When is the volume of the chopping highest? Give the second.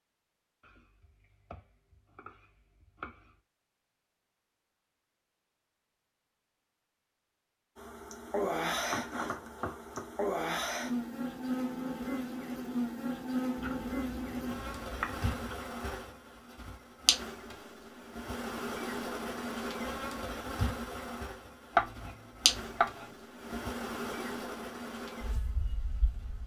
22 s.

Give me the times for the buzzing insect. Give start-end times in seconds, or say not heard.
7.8-26.4.